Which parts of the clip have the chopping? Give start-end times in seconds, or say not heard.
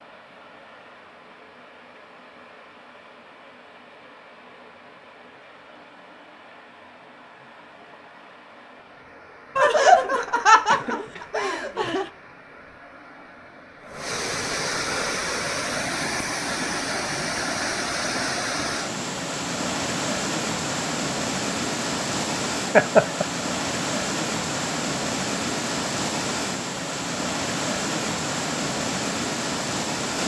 not heard.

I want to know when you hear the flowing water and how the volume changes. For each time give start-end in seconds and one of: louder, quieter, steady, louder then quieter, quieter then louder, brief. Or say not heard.
0.0-30.2 louder.